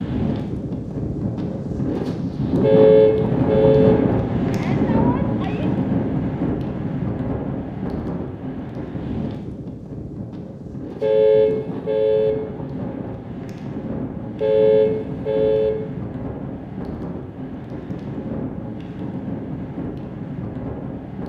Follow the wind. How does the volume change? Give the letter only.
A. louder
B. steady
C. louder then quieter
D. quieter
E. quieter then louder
D.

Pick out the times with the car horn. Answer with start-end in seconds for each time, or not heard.
2.6-4.0, 11.0-12.3, 14.4-15.7.